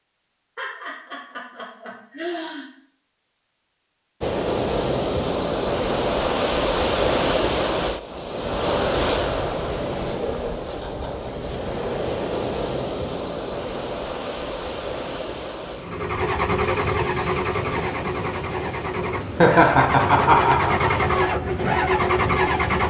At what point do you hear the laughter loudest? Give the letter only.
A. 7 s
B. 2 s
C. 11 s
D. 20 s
D.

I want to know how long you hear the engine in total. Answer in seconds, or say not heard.
7 s.